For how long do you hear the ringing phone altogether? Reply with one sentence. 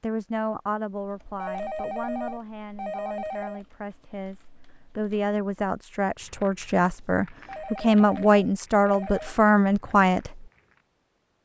You can hear the ringing phone for 4 seconds altogether.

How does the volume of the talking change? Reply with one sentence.
The loudness of the talking goes down, then up.